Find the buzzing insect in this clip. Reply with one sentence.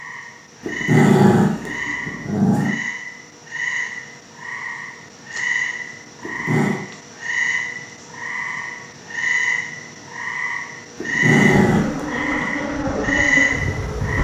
You can hear the buzzing insect from 11.3 to 14.1 s.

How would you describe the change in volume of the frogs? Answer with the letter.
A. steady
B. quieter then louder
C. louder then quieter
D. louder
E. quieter
D.